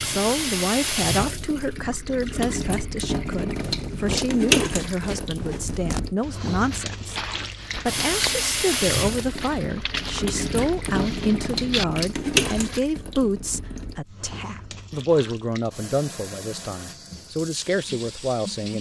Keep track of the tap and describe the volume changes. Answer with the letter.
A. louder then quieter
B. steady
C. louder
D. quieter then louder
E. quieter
E.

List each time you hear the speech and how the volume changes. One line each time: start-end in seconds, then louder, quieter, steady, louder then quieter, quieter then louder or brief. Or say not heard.
0.0-18.7 steady.